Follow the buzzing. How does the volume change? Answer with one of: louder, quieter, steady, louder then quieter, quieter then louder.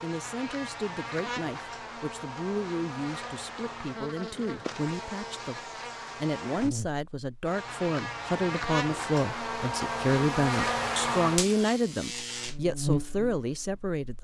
louder.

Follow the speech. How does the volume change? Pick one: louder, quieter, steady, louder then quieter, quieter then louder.
louder.